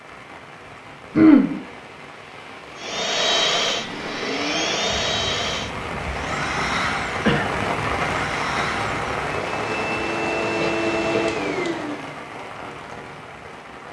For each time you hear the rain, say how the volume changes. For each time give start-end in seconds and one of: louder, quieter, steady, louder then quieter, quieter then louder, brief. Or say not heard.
0.0-13.8 louder then quieter.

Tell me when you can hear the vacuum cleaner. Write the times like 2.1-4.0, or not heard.
2.8-12.1.